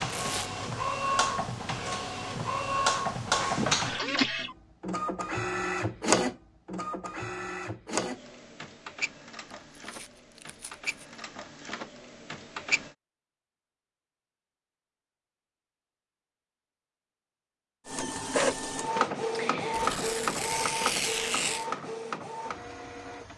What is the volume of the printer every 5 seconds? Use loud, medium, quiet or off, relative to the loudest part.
loud, loud, medium, loud, medium.